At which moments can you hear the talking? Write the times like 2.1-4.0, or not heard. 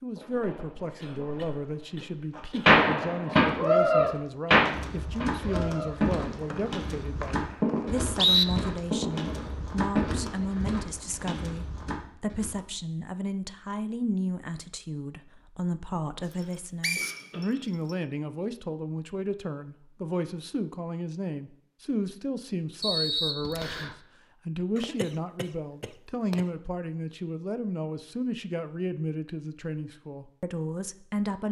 0.0-31.4.